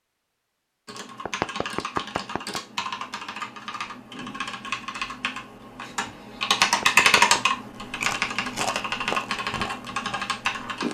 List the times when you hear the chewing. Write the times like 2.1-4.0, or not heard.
7.8-10.9.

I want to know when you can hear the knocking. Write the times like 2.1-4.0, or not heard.
1.2-2.6, 6.8-7.4.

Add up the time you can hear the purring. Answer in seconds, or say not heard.
not heard.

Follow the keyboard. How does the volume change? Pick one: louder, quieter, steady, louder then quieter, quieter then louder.
louder then quieter.